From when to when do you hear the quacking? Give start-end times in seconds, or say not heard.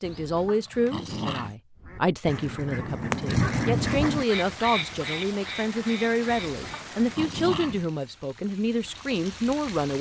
1.8-6.7.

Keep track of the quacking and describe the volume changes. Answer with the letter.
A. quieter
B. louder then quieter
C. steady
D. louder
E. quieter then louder
B.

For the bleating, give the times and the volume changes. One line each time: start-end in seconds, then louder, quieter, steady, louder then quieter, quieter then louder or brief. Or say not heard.
not heard.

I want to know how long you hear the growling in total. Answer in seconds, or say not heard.
3 s.